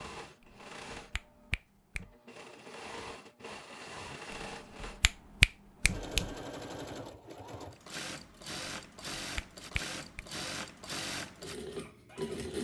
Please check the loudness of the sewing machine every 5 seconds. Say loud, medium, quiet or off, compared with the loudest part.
medium, loud, loud.